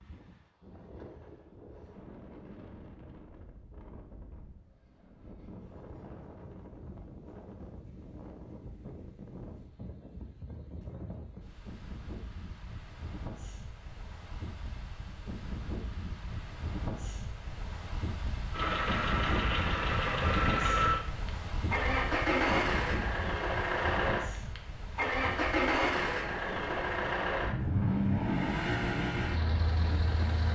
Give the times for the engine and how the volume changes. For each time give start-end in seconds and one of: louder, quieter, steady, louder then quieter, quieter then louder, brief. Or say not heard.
18.5-30.5 steady.